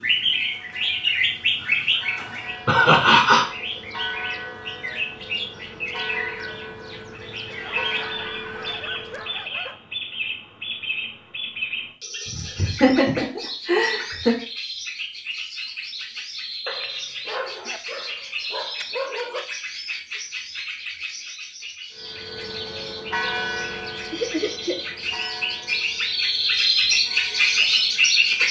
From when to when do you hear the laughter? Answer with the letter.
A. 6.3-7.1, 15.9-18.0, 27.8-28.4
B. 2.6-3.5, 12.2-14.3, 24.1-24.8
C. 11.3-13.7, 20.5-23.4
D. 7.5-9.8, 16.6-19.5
B.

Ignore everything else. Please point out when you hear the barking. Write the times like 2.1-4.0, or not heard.
7.5-9.8, 16.6-19.5.